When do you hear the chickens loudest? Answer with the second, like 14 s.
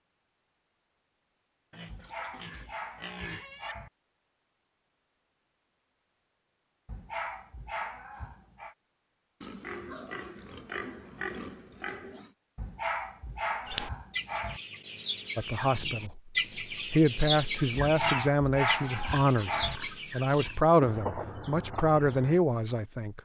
17 s.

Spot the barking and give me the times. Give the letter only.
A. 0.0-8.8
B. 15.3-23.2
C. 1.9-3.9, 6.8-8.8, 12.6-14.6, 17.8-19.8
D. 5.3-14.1
C.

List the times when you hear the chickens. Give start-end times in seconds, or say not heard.
13.7-22.4.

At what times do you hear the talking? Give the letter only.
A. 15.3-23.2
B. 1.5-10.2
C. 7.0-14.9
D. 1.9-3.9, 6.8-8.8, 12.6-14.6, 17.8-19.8
A.